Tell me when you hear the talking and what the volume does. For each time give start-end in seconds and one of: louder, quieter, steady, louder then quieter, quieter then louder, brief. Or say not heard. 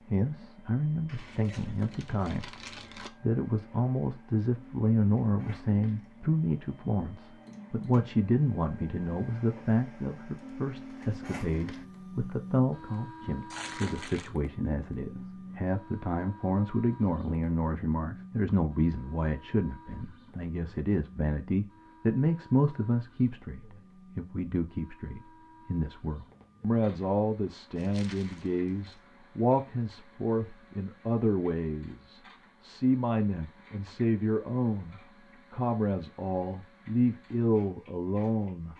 0.1-38.7 steady.